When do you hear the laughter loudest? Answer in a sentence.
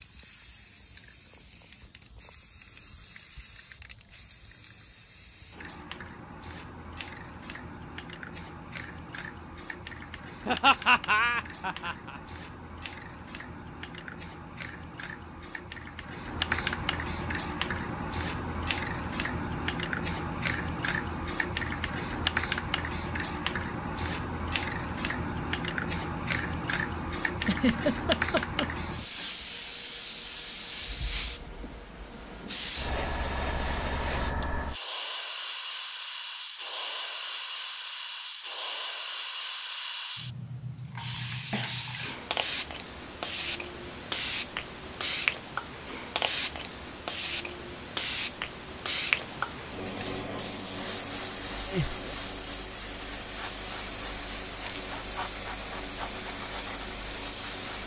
The volume of the laughter peaks at 11 seconds.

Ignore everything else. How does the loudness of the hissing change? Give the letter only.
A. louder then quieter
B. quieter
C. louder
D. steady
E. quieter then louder
C.